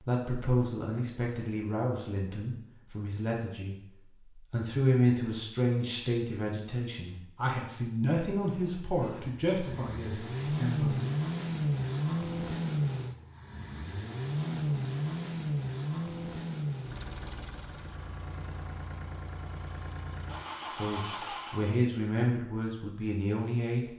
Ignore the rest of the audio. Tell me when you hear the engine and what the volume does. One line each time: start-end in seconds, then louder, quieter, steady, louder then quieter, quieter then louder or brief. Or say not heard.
8.4-21.8 quieter.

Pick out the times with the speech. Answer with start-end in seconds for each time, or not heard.
0.0-11.1, 20.8-23.9.